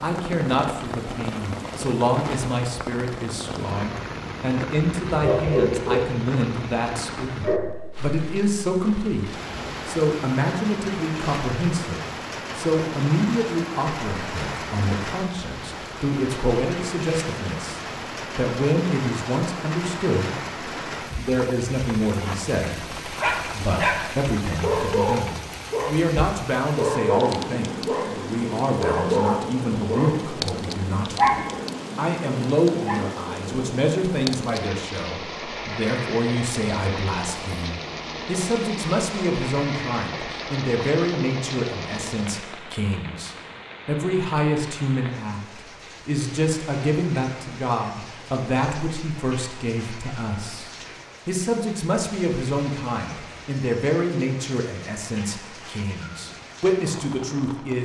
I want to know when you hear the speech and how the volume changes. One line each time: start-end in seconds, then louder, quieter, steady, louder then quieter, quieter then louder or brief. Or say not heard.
0.0-57.8 steady.